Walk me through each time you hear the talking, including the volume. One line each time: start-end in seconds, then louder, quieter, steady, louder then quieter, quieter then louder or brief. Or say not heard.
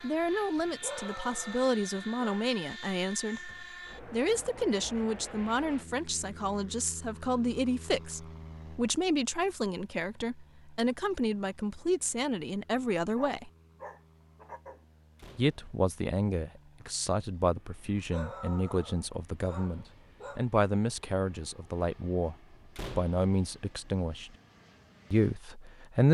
0.0-13.5 steady
15.3-24.3 steady
25.1-26.0 brief.